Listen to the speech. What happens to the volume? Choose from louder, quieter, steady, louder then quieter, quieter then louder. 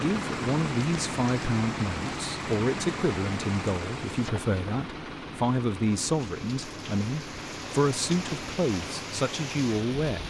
steady.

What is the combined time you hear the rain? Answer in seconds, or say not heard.
10 s.